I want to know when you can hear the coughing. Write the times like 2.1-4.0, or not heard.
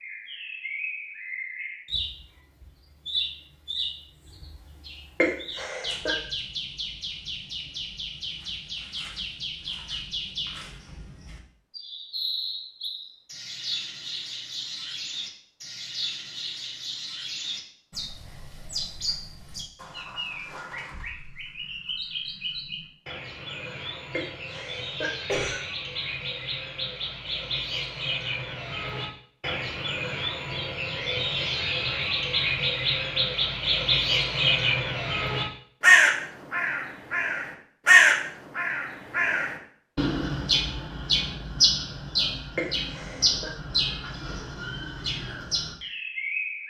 5.2-6.2, 24.1-25.6, 42.5-43.5.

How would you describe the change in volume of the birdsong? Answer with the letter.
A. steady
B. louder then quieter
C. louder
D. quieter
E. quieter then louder
C.